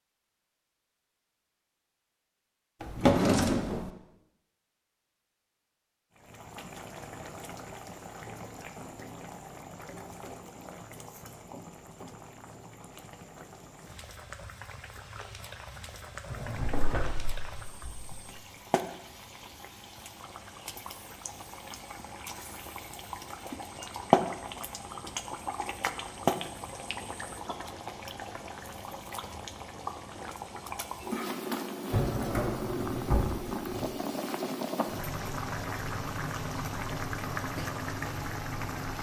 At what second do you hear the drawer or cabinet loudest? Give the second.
3 s.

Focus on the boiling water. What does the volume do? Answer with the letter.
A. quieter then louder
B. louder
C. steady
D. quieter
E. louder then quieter
B.